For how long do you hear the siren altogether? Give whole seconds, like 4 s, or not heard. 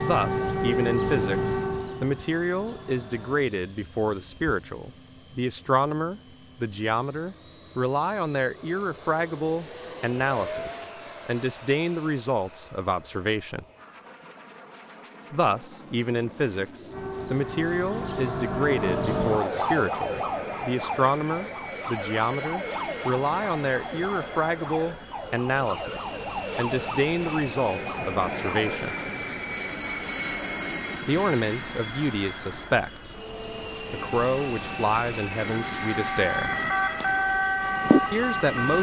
21 s.